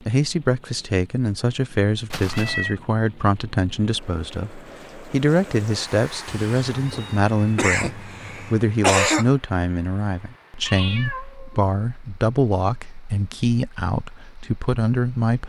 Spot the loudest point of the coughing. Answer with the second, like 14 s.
9 s.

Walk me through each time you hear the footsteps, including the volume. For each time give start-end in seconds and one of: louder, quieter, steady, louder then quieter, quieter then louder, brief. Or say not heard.
not heard.